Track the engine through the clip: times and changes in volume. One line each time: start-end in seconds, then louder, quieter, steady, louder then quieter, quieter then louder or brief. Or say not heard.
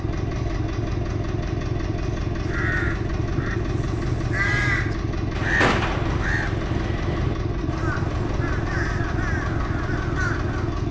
0.0-10.8 steady.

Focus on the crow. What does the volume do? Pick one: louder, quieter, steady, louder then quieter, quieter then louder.
louder then quieter.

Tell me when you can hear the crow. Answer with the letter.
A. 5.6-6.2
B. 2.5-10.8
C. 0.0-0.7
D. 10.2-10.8
B.